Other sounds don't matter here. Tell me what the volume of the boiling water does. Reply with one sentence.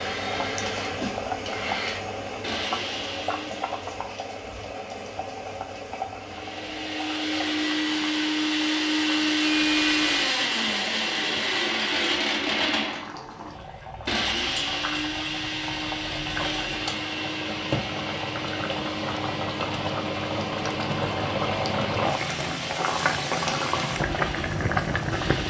The loudness of the boiling water goes down, then up.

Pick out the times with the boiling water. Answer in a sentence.
The boiling water can be heard from 0.0 to 25.4 s.